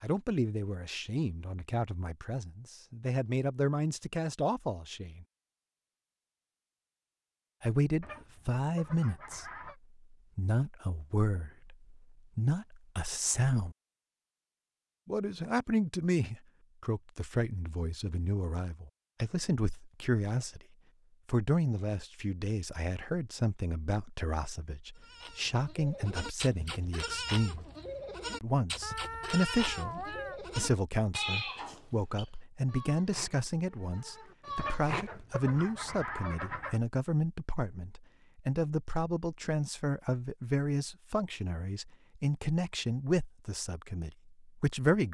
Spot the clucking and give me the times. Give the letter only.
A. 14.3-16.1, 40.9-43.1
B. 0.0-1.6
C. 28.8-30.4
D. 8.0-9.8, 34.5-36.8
D.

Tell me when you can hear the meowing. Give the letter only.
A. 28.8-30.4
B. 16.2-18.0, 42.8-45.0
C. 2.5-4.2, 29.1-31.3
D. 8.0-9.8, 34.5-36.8
A.